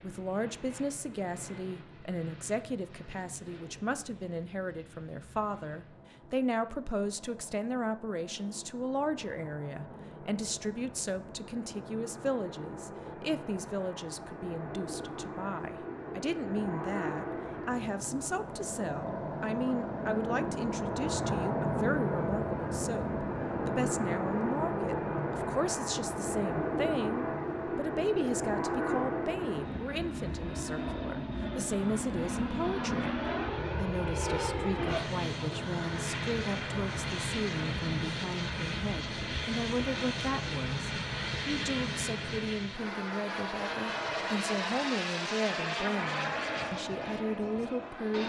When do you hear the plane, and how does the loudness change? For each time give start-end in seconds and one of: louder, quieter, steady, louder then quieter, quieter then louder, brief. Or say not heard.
0.0-48.2 louder.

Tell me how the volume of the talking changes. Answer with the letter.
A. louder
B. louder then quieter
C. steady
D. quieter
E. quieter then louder
C.